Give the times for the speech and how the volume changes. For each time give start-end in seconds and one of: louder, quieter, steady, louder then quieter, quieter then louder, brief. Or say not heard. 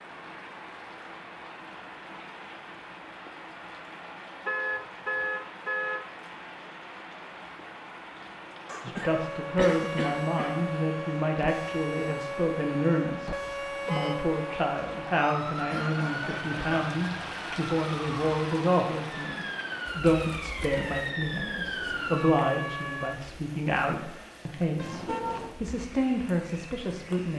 8.8-27.3 steady.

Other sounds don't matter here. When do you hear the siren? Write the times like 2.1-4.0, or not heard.
9.0-23.2.